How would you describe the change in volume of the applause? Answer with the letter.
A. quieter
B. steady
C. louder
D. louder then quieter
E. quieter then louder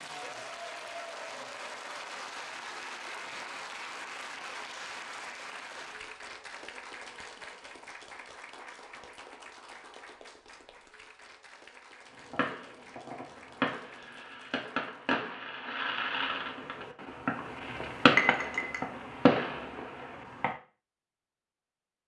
A.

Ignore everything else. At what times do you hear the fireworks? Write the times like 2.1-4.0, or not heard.
12.2-20.6.